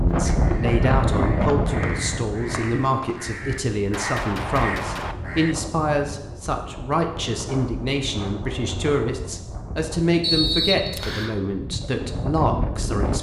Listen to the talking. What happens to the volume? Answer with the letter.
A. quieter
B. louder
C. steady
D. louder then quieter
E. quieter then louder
C.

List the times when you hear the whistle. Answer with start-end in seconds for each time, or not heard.
1.8-3.2, 10.2-11.3.